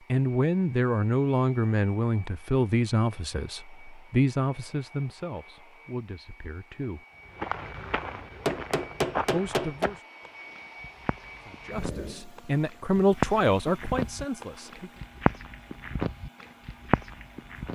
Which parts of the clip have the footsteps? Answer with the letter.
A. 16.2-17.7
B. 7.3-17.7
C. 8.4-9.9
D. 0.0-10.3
B.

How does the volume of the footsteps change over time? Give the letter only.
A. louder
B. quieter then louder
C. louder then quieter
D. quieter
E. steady
B.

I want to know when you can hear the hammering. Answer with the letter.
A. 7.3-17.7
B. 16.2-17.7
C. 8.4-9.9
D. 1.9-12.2
C.